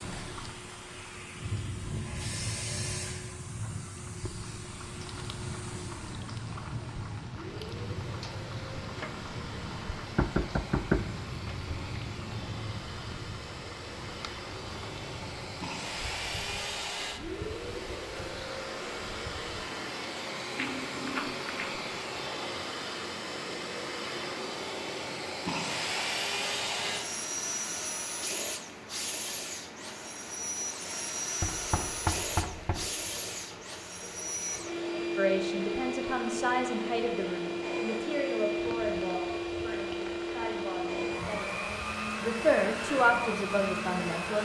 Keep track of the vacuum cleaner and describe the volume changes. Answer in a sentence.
The loudness of the vacuum cleaner goes up.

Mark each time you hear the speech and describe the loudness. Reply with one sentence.
You can hear the speech from 35.1 to 41.5 s, getting quieter; and briefly from 42.1 to 44.4 s.